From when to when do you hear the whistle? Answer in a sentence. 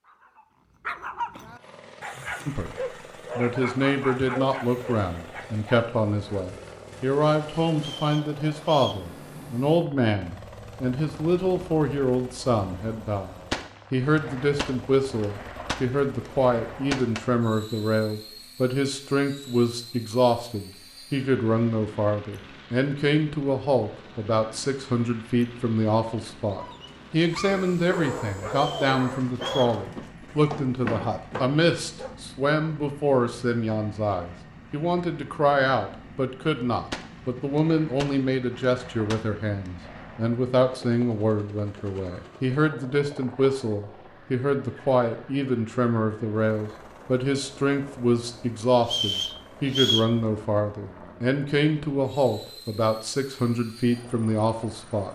You can hear the whistle from 7.8 to 9.0 s, from 28.5 to 29.8 s and from 48.8 to 50.1 s.